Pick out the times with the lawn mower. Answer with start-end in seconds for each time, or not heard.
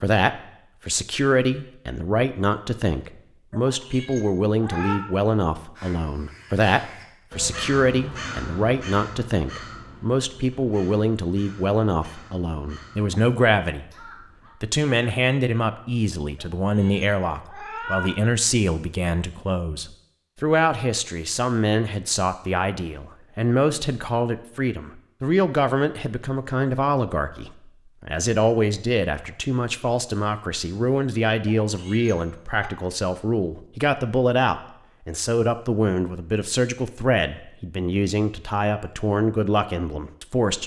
not heard.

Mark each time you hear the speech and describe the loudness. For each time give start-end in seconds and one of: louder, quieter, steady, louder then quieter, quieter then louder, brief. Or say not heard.
0.0-13.8 steady
14.6-40.6 steady.